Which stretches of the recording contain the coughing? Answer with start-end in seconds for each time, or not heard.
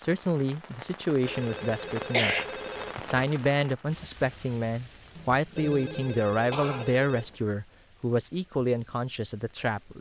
1.9-2.5, 5.2-7.0.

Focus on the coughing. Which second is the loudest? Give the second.
2 s.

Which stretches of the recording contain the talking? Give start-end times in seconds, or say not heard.
0.0-2.4, 3.0-9.9.